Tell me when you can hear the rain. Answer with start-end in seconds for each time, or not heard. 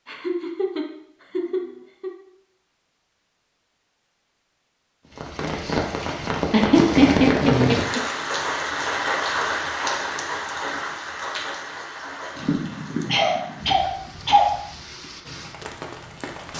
5.2-16.5.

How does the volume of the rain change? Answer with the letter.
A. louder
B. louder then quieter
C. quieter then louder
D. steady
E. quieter
E.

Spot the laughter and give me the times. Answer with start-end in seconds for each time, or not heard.
0.1-2.1, 6.5-8.0, 12.3-14.5.